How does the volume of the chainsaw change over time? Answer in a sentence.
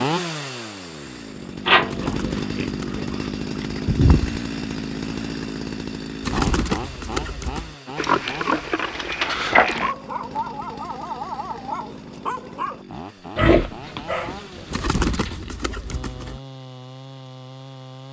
The volume of the chainsaw goes down.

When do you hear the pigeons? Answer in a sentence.
The pigeons can be heard from 1.9 to 4.4 s, from 6.2 to 7.8 s and from 14.7 to 16.4 s.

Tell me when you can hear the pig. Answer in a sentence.
You can hear the pig from 1.6 to 3.3 s, from 8.0 to 9.9 s and from 13.3 to 15.5 s.